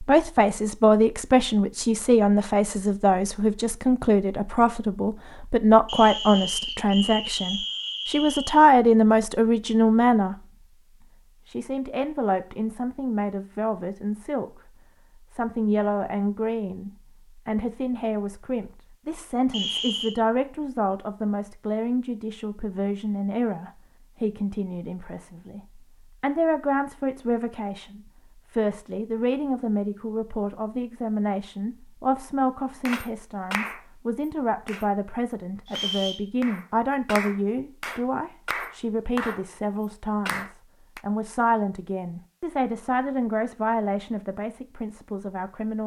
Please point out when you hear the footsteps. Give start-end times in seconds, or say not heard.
not heard.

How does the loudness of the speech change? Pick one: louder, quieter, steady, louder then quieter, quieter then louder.
quieter.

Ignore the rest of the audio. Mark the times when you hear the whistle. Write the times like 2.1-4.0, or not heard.
5.8-8.6, 19.5-20.1, 35.6-36.2.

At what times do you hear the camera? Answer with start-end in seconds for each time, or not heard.
not heard.